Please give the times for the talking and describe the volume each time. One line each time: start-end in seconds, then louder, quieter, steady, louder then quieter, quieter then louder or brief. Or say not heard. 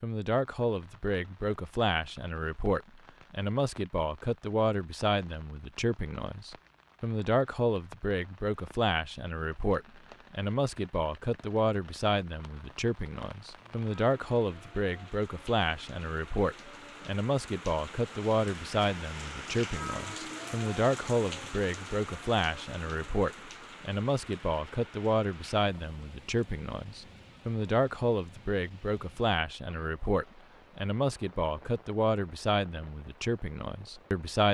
0.0-34.5 steady.